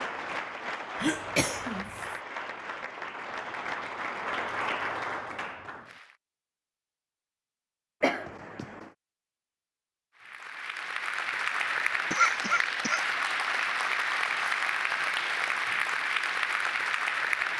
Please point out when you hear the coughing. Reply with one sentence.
You can hear the coughing from 1.0 to 2.0 s, from 8.0 to 8.9 s and from 12.1 to 13.0 s.